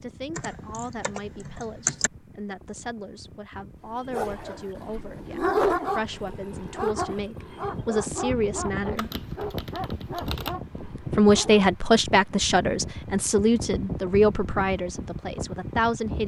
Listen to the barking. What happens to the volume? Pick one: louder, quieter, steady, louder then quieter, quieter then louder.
quieter.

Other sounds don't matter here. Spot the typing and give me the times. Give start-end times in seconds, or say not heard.
0.3-2.1, 8.9-10.6.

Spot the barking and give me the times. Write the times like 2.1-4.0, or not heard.
4.0-11.7.